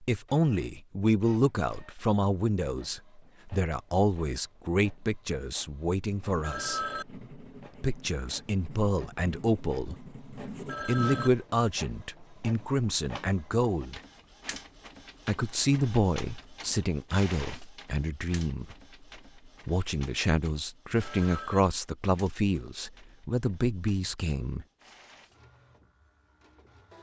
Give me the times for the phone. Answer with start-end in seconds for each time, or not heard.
6.3-7.0, 10.6-11.3, 20.9-21.6.